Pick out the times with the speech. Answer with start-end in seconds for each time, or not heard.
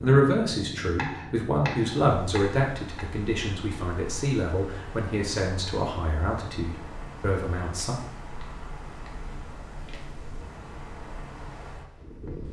0.0-8.0.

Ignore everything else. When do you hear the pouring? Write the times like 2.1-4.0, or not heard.
not heard.